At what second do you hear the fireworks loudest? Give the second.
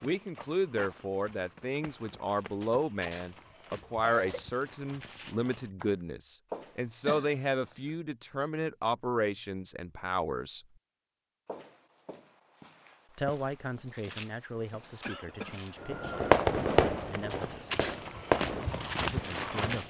16 s.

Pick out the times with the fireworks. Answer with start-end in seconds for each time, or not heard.
15.8-19.8.